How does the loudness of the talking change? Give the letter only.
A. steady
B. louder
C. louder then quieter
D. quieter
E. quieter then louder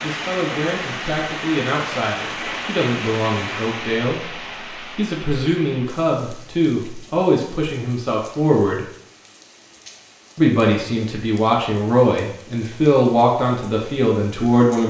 B.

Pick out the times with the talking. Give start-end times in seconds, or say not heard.
0.0-8.8, 10.3-14.8.